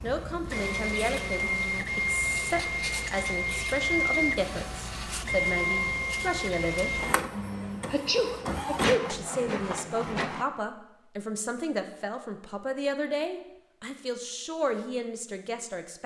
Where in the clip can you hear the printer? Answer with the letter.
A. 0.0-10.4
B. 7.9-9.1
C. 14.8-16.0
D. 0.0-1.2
A.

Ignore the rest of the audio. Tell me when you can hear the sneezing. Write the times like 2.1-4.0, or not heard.
7.9-9.1.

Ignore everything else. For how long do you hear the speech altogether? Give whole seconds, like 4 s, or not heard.
14 s.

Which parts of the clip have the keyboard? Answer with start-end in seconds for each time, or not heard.
not heard.